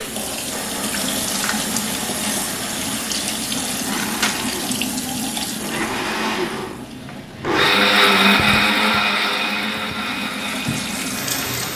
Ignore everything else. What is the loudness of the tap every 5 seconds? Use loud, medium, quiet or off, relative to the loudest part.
loud, medium, loud.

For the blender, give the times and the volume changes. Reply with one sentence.
The blender can be heard from 0.0 to 11.7 s, getting louder then quieter.